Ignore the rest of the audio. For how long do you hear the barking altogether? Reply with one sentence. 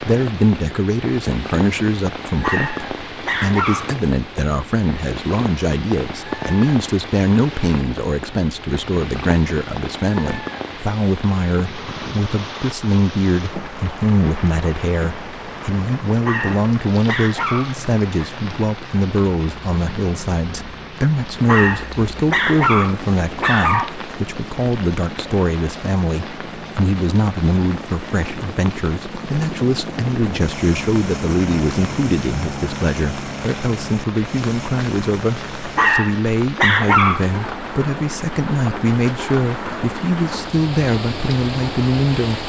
You can hear the barking for 8 seconds altogether.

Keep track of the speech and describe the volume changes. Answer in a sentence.
The loudness of the speech stays about the same.